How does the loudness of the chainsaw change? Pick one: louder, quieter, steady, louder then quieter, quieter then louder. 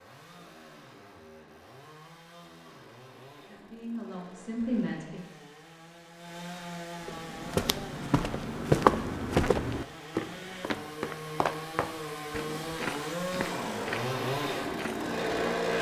louder.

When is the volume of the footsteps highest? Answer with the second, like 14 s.
9 s.